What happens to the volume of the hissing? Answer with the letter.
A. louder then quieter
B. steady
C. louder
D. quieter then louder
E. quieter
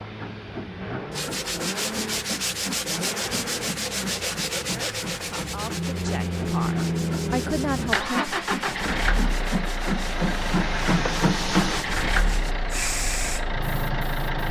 C.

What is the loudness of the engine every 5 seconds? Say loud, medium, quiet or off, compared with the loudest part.
medium, loud, loud.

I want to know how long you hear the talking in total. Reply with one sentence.
The talking can be heard for 4 seconds in total.